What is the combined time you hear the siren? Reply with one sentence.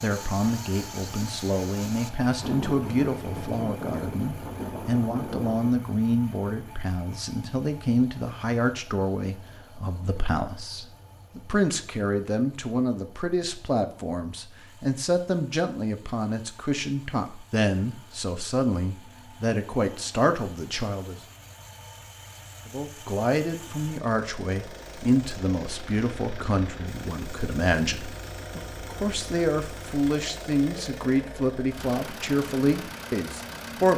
The siren can't be heard in this clip.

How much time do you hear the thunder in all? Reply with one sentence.
The thunder can be heard for 3 seconds in total.